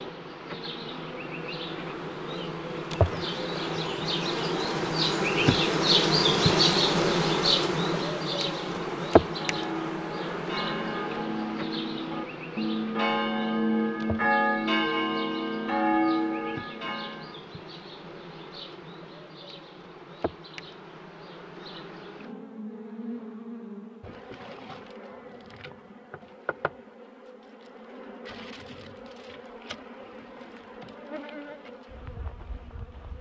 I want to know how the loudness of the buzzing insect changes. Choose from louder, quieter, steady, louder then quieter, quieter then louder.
quieter.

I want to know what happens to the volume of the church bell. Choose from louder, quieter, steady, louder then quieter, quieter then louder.
louder.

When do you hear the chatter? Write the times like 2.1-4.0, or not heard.
not heard.